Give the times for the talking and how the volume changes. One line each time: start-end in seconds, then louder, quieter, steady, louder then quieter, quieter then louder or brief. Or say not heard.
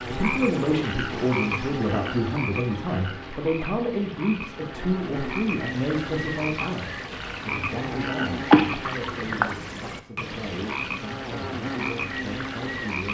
0.0-13.0 quieter.